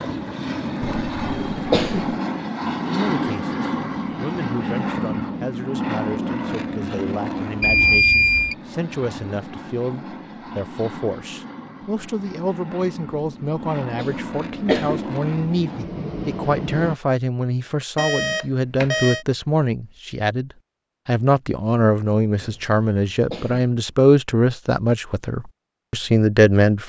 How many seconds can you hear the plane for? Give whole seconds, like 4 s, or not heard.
17 s.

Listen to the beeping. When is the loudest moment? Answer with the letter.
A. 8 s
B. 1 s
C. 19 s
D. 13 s
A.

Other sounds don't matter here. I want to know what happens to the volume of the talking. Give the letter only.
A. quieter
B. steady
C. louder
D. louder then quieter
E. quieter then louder
C.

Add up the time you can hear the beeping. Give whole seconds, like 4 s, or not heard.
2 s.